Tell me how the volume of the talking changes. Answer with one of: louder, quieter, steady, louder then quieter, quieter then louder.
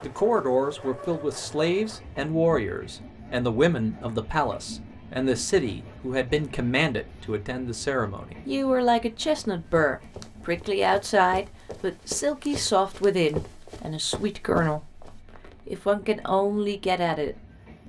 steady.